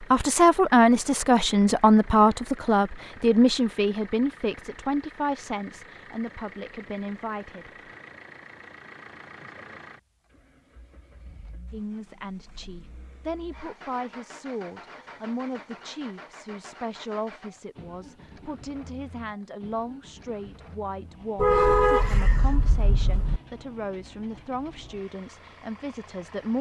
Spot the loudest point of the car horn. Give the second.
22 s.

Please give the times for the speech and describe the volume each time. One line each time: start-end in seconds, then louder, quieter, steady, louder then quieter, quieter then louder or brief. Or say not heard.
0.0-7.9 quieter
11.7-26.5 steady.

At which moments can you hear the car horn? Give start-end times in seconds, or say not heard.
21.4-23.4.